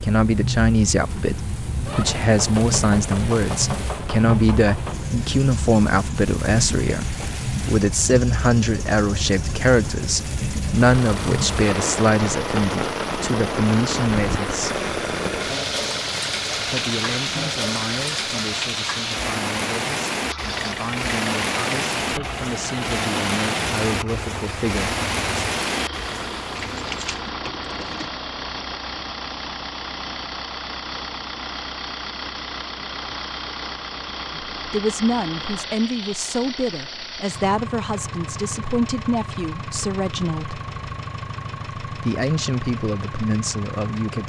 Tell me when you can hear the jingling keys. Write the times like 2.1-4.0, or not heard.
26.7-28.1.